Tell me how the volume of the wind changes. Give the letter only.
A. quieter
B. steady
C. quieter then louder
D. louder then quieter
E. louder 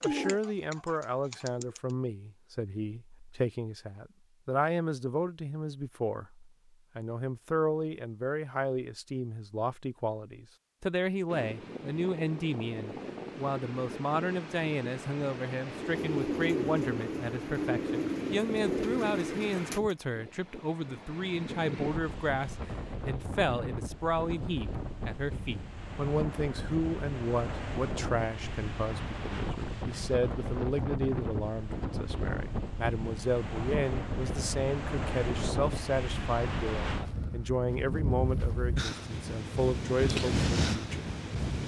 E.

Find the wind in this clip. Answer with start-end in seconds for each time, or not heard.
11.2-41.6.